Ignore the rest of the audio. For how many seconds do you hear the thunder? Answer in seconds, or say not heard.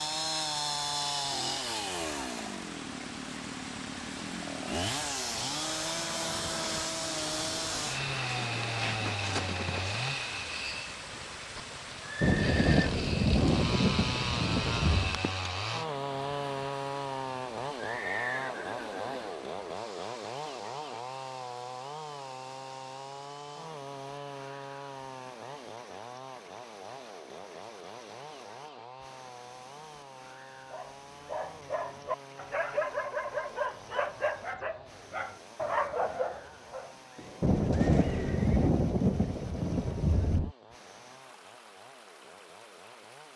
6 s.